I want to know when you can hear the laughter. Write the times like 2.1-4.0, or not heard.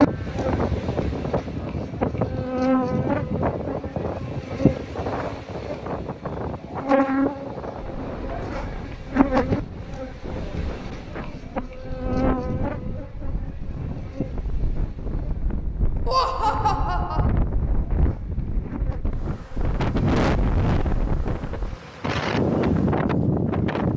16.1-17.3.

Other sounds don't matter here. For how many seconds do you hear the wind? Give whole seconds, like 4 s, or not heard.
24 s.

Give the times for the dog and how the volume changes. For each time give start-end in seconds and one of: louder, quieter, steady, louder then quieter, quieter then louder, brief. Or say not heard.
not heard.